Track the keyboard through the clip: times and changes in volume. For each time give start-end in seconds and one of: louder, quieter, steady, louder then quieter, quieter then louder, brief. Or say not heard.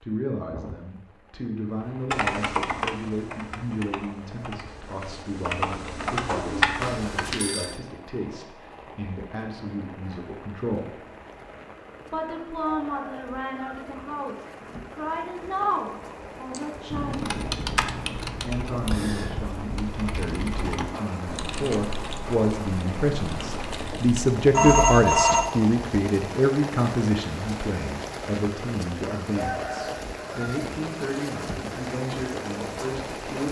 2.1-7.4 quieter then louder
16.5-24.4 quieter.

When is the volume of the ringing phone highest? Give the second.
25 s.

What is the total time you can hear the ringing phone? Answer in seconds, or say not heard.
2 s.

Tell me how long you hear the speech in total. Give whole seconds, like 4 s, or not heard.
31 s.